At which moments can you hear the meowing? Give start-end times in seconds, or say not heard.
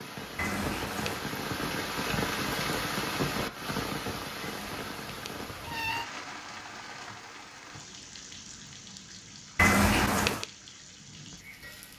0.3-1.2, 4.4-6.0, 9.6-10.4.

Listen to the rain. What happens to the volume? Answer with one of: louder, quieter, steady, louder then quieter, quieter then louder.
quieter.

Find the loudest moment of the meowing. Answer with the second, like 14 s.
10 s.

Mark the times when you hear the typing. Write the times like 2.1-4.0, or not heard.
not heard.